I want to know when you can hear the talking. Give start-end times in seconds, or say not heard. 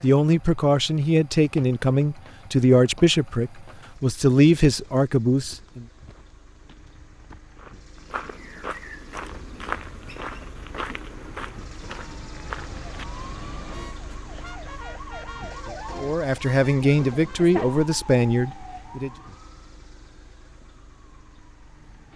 0.0-5.8, 16.0-19.1.